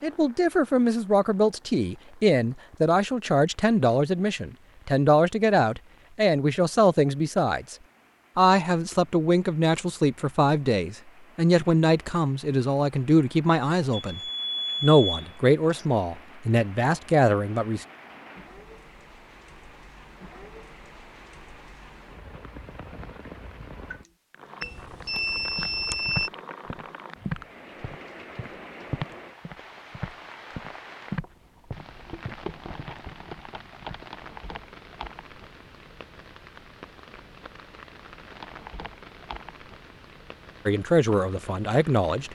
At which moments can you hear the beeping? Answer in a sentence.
You can hear the beeping from 13.9 to 15.8 s and from 24.6 to 26.3 s.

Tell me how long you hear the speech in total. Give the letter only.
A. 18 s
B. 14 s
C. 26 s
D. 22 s
A.